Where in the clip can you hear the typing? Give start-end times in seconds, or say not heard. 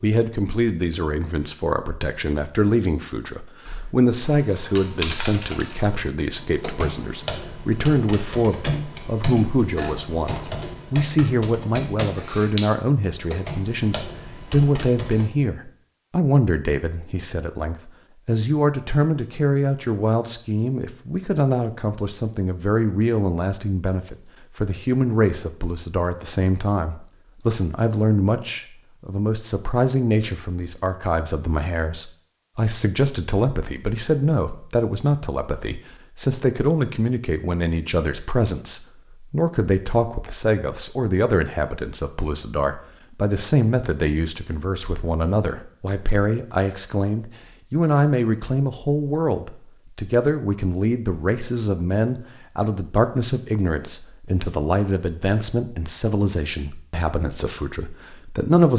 3.6-15.2.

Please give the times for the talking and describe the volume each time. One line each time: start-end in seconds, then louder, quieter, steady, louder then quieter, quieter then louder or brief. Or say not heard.
0.0-58.7 steady.